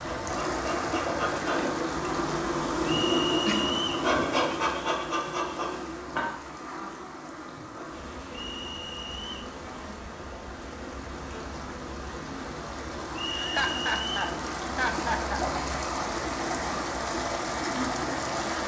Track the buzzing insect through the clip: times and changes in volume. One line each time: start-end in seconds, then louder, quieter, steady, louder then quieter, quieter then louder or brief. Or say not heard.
0.0-18.6 quieter.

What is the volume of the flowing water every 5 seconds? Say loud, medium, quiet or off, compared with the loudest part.
loud, quiet, medium, loud.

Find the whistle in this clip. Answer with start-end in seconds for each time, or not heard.
2.9-4.0, 8.3-9.5, 13.1-14.3.